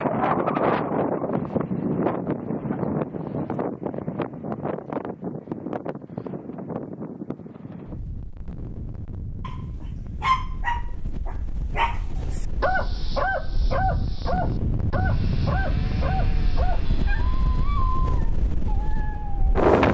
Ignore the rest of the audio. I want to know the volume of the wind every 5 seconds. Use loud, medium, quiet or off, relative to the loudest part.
loud, medium, medium, loud.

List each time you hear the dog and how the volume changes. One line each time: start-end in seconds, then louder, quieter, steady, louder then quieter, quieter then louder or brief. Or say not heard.
9.4-19.6 quieter.